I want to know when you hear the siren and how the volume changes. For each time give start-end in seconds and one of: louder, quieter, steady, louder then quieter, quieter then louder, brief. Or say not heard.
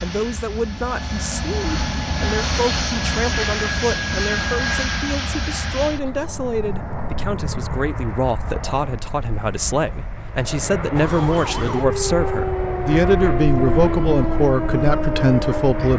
10.9-15.9 steady.